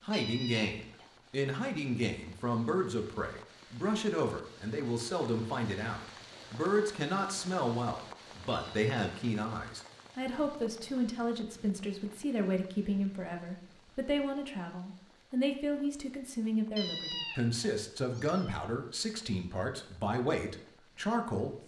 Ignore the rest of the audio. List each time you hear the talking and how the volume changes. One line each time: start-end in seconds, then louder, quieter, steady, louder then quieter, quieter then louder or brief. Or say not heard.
0.0-21.6 steady.